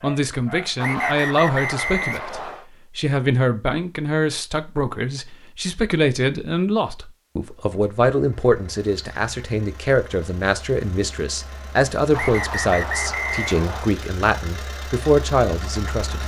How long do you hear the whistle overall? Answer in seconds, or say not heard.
4 s.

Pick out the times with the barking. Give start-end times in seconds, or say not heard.
0.0-1.2.